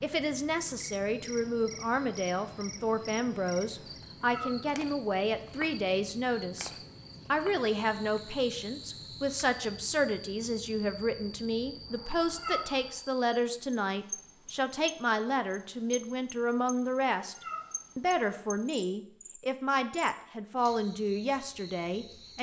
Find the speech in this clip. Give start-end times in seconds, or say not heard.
0.0-6.7, 7.3-22.3.